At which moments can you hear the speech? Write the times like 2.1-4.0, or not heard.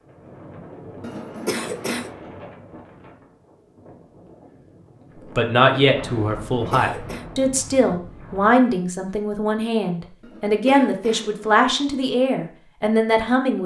5.3-13.6.